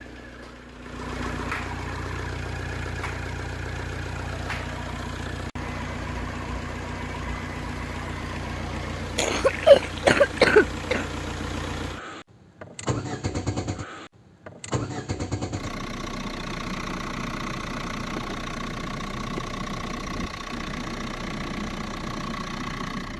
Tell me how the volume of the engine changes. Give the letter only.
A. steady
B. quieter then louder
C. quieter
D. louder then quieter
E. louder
A.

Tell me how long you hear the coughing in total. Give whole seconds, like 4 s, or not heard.
2 s.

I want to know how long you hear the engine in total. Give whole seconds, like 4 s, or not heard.
23 s.